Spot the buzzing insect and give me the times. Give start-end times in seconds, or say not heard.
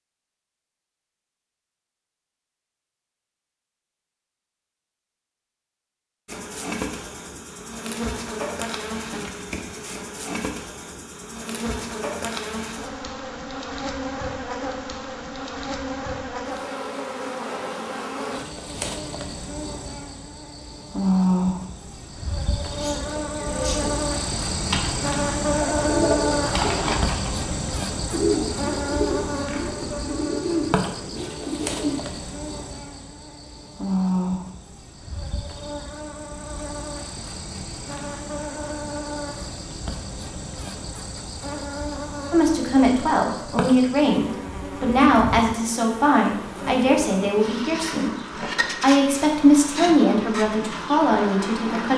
6.2-51.9.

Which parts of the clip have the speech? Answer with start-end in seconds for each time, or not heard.
42.3-48.1, 48.8-51.9.